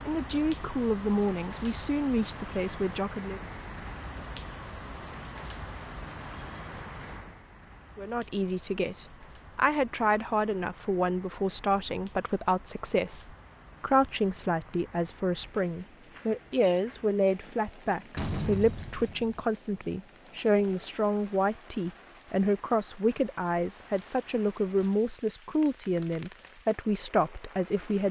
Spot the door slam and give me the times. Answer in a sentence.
You can hear the door slam from 18.1 to 19.4 s.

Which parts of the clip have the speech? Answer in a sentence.
The speech can be heard from 0.1 to 3.4 s and from 8.0 to 28.0 s.